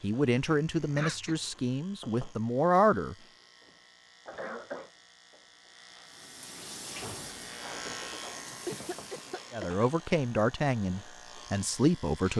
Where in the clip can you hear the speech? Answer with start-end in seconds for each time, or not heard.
0.0-3.1, 9.5-12.3.